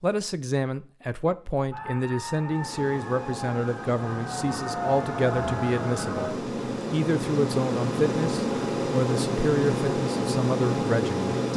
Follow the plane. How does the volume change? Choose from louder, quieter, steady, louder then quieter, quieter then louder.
louder.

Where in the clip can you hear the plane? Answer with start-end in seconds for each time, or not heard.
2.4-11.5.